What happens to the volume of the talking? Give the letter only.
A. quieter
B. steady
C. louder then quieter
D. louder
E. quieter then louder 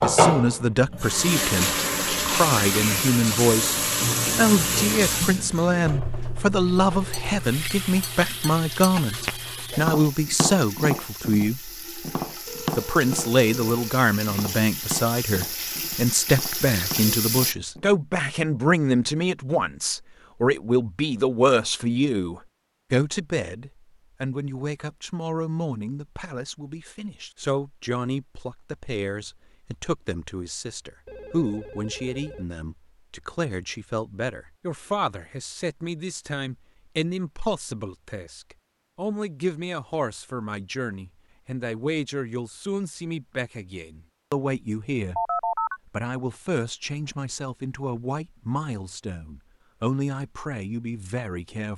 A.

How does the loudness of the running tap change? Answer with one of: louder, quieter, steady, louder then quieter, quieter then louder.
quieter then louder.